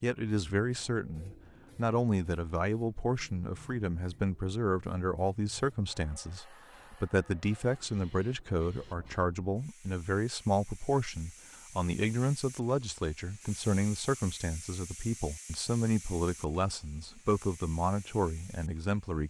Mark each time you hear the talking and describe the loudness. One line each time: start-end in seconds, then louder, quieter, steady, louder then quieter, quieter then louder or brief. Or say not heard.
0.0-19.2 steady.